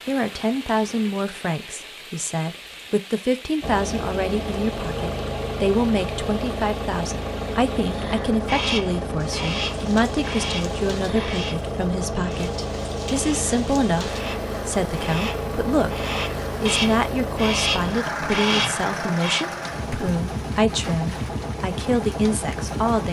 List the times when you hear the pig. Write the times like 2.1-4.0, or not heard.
not heard.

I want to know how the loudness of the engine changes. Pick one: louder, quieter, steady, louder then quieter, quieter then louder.
steady.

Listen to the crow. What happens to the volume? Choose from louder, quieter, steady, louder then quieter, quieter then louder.
quieter then louder.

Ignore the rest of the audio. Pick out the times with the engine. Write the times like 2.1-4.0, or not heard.
3.6-23.0.